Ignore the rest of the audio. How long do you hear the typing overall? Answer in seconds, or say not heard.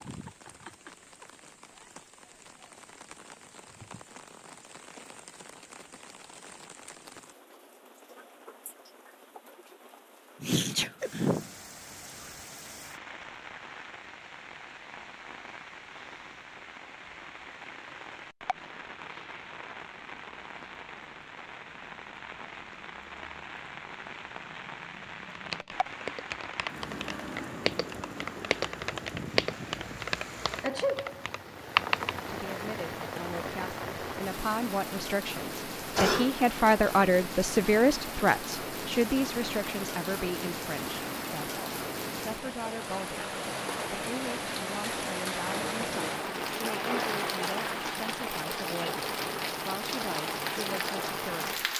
7 s.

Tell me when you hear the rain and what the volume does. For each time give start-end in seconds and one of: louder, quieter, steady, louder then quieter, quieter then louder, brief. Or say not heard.
0.0-51.7 louder.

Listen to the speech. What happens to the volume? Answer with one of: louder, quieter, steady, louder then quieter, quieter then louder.
louder then quieter.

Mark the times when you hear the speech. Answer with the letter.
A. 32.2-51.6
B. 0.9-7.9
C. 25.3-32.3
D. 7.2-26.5
A.